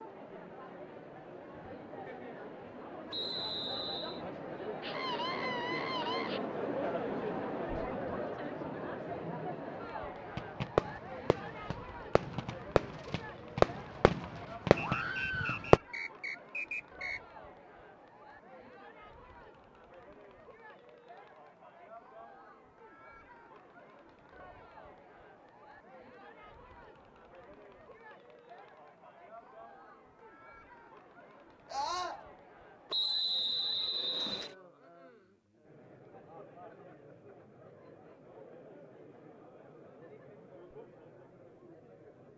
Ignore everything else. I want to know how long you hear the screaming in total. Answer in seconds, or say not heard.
3 s.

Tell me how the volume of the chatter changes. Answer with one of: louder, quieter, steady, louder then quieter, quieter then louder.
quieter.